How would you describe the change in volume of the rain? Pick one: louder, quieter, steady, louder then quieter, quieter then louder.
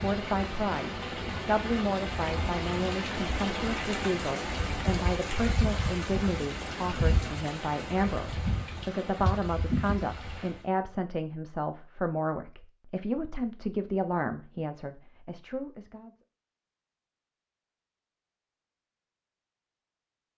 steady.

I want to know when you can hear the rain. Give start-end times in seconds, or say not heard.
0.0-10.7.